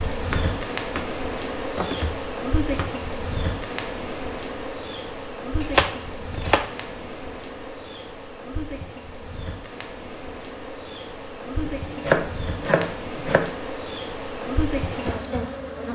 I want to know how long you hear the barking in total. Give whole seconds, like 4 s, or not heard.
not heard.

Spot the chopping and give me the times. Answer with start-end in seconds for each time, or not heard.
0.3-1.1, 1.8-3.0, 5.6-6.8, 11.7-13.6.